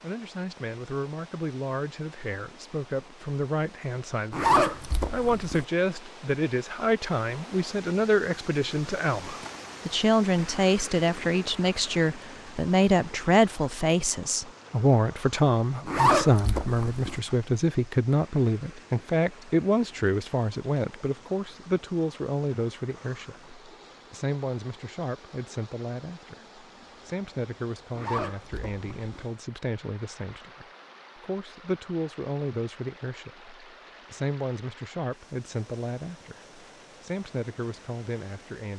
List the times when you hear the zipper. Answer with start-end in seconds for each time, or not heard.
4.3-5.7, 15.8-17.2, 27.9-29.2.